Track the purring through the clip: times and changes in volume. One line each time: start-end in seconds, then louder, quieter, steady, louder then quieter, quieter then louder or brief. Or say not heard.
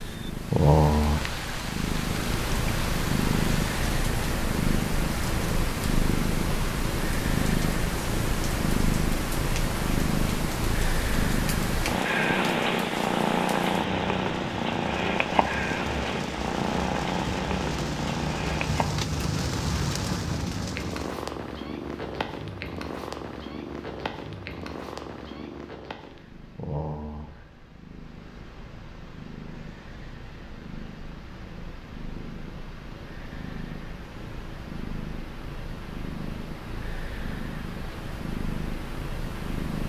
0.0-39.8 quieter.